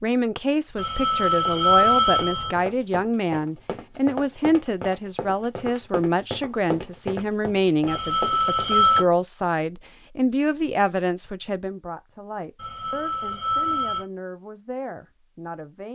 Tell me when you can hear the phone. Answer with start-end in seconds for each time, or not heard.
0.8-2.5, 7.8-9.1, 12.6-14.1.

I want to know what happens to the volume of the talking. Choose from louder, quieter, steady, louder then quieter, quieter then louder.
quieter.